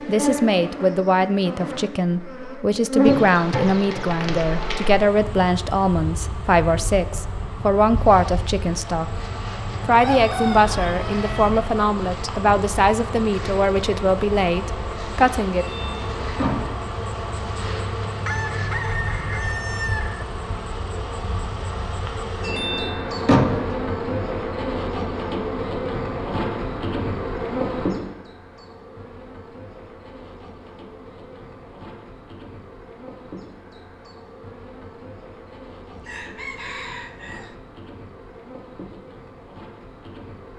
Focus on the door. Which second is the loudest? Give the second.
23 s.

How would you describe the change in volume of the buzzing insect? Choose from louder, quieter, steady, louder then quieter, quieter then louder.
quieter.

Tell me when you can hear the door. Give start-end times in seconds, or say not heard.
15.6-16.9, 22.4-23.8.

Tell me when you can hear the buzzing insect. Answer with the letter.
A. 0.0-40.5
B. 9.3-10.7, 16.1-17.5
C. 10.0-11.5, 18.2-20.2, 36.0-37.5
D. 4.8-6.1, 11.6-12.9
A.